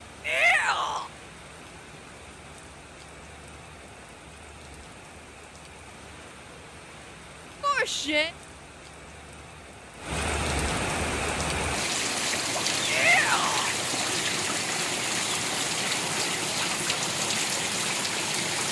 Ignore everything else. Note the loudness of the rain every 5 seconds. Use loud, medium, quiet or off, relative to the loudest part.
quiet, quiet, loud, loud.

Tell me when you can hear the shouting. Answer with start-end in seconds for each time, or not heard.
0.2-1.1, 7.6-8.3, 12.8-13.7.